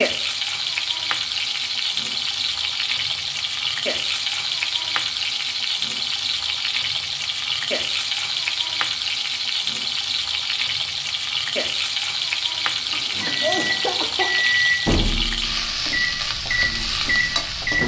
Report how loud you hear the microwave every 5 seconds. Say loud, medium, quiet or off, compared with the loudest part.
off, off, loud, loud.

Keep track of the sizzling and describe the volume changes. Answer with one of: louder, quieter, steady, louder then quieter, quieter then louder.
steady.